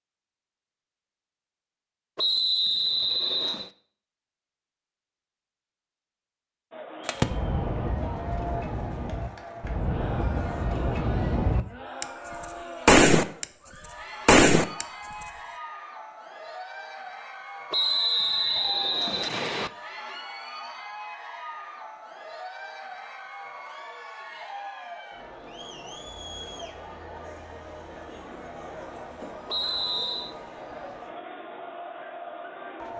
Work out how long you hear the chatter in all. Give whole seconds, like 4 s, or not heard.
26 s.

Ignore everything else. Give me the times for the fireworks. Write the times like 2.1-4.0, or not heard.
7.0-13.4, 14.2-15.2.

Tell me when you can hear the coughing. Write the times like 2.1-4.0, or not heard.
not heard.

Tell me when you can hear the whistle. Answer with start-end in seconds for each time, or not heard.
2.1-3.7, 17.7-19.7, 29.4-30.4.